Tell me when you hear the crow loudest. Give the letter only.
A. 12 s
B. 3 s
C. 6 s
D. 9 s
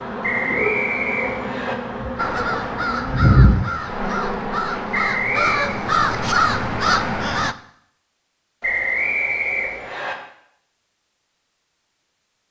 C.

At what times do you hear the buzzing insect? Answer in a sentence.
You can hear the buzzing insect from 0.0 to 7.0 s.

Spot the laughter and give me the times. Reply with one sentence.
You can't hear the laughter here.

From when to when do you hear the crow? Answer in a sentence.
The crow can be heard from 2.1 to 7.5 s.